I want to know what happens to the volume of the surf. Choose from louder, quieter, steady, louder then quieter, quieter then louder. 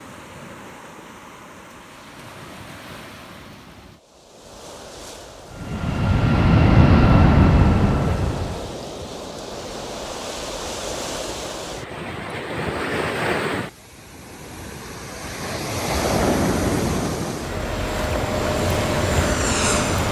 louder.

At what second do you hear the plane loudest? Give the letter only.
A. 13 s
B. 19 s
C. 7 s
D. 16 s
C.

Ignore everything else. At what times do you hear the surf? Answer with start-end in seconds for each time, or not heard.
0.0-20.0.